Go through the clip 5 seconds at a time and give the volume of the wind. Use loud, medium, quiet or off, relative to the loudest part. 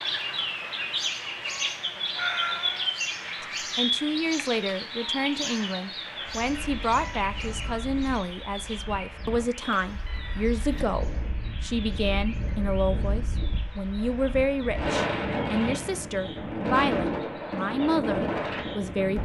off, quiet, medium, loud.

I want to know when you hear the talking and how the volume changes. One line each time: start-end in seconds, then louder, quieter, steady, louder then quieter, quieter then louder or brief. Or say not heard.
3.4-19.1 steady.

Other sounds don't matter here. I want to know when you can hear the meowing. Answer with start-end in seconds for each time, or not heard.
2.1-3.0, 9.6-10.9.